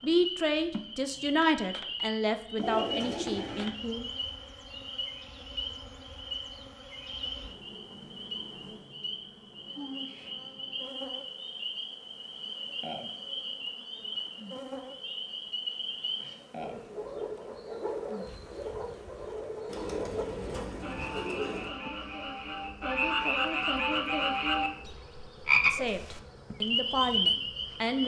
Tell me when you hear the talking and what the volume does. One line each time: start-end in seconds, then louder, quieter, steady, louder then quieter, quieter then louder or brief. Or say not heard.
0.0-4.1 quieter
25.6-28.0 brief.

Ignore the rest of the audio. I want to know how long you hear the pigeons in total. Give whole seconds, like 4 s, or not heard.
3 s.